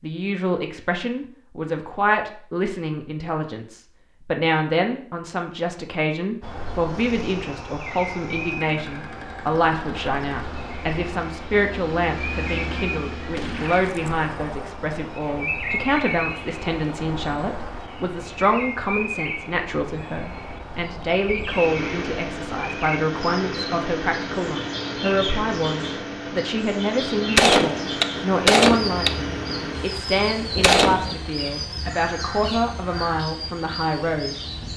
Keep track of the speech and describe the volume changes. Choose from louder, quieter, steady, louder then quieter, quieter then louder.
steady.